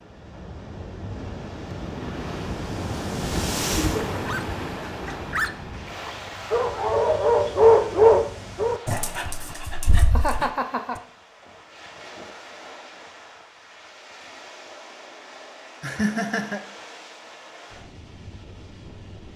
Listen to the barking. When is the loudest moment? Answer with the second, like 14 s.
8 s.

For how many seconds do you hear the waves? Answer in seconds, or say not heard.
19 s.